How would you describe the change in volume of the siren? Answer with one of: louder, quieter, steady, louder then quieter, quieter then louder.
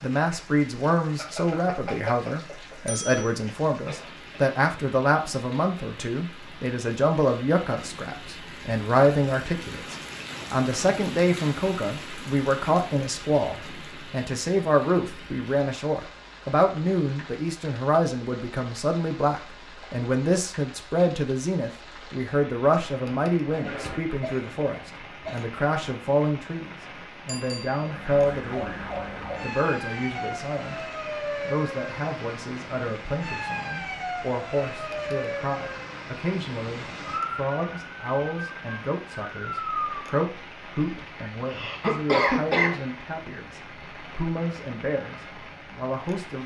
steady.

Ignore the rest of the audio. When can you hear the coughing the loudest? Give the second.
42 s.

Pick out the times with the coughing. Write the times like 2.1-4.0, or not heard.
3.9-4.4, 23.5-25.4, 40.8-42.8.